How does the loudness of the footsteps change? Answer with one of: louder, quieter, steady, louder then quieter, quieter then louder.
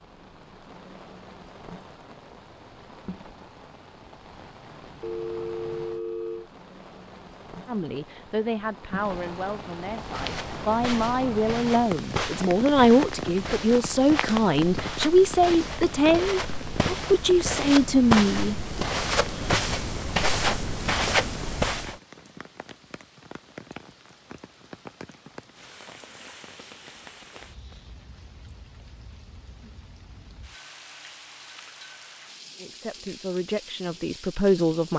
louder.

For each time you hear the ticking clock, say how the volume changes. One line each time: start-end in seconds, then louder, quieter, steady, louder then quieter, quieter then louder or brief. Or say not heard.
not heard.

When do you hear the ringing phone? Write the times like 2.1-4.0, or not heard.
5.0-6.5.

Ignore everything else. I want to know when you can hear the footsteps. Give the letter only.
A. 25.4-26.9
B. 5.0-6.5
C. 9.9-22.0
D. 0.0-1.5
C.